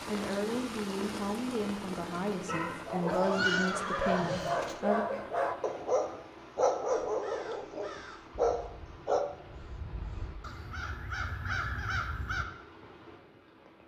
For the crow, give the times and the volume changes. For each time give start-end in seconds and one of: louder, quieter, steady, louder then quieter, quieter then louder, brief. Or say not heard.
6.8-12.4 quieter then louder.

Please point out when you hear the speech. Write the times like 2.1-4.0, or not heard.
0.1-5.0.